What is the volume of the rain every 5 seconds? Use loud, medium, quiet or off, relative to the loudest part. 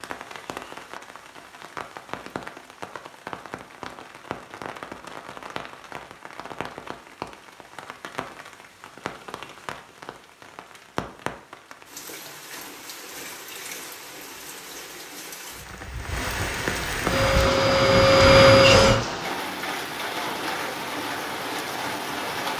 medium, medium, medium, loud, loud.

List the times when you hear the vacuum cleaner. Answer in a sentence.
You can hear the vacuum cleaner from 17.1 to 19.0 s.